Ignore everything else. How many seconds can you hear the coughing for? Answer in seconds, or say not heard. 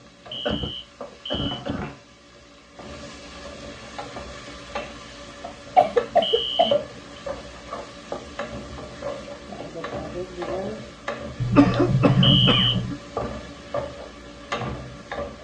4 s.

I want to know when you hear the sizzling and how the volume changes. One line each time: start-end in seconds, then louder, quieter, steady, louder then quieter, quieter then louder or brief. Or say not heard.
0.0-15.4 louder.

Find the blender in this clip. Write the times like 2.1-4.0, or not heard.
not heard.